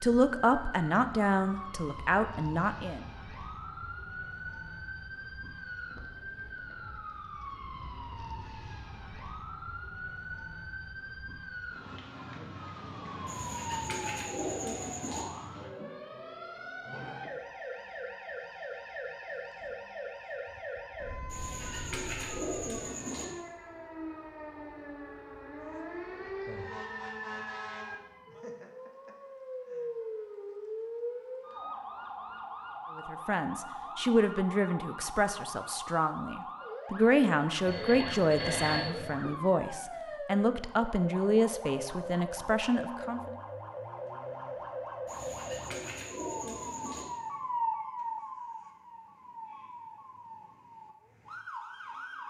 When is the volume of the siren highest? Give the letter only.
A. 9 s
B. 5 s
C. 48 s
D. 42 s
C.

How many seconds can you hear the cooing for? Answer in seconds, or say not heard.
6 s.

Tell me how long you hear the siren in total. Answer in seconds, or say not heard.
52 s.